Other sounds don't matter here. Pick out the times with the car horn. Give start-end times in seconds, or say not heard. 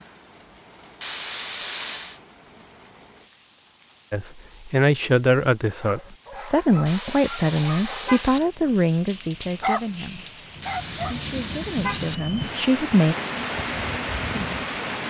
1.0-2.2, 6.8-8.5, 10.6-12.2.